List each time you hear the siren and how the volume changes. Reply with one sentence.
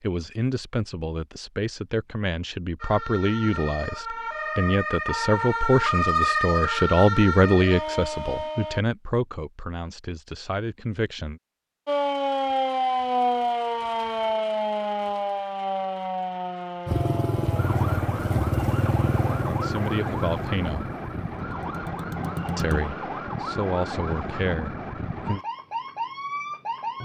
You can hear the siren from 2.8 to 8.8 s, getting louder then quieter; and from 11.8 to 27.0 s, getting quieter.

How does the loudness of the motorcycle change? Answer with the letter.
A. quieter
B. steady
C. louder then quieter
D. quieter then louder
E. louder
A.